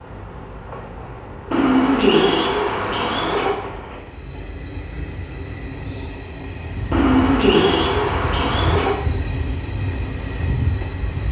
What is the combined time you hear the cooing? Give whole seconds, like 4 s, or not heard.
4 s.